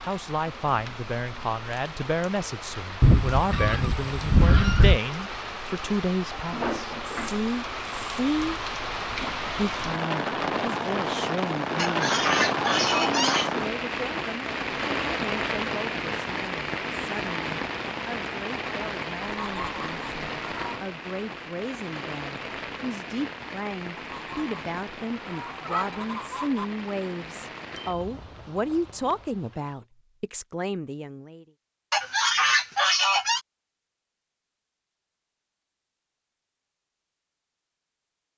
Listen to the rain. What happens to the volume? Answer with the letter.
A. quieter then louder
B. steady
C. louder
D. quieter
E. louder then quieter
E.